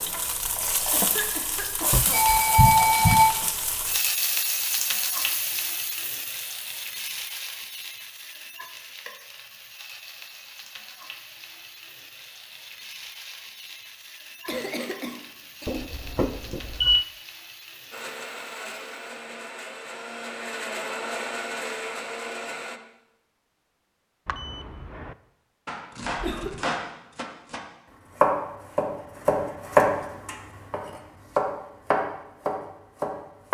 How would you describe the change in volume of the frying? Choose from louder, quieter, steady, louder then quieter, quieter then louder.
quieter.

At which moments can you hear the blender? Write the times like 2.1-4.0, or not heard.
17.9-22.8.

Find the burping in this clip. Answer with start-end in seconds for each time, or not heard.
not heard.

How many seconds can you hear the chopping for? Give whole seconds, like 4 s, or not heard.
7 s.